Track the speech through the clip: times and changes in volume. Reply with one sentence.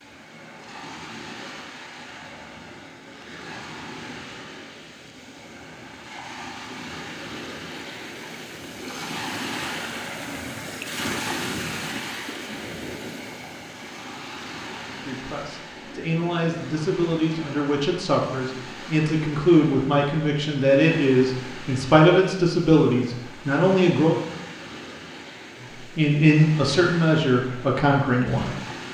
The speech can be heard from 14.8 to 24.2 s, getting louder; and briefly from 25.8 to 28.6 s.